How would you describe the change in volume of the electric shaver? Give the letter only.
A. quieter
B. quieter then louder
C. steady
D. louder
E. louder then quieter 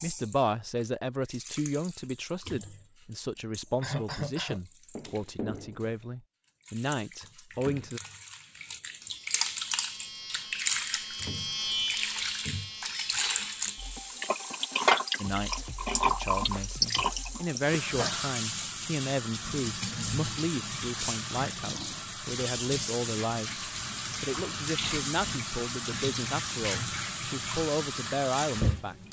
E.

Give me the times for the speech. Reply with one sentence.
You can hear the speech from 0.0 to 8.0 s and from 15.2 to 28.9 s.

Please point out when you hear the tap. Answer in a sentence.
The tap can be heard from 0.0 to 29.0 s.